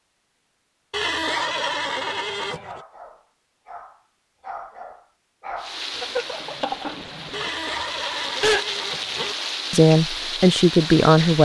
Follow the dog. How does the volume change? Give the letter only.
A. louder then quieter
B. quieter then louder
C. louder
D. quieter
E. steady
A.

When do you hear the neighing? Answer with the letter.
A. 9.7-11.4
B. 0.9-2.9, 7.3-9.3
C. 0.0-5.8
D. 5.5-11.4
B.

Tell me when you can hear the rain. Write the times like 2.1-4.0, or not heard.
5.5-11.4.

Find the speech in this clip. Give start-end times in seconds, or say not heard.
9.7-11.4.